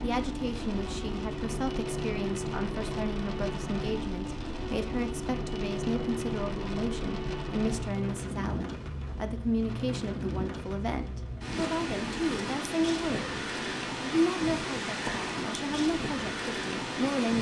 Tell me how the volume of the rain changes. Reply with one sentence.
The loudness of the rain stays about the same.